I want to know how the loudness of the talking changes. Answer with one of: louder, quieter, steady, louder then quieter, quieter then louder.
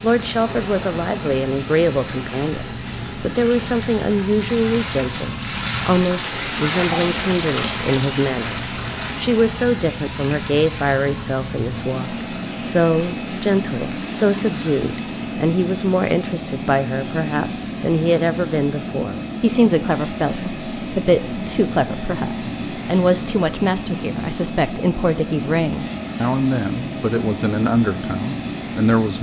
steady.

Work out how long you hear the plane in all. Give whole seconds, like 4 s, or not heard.
29 s.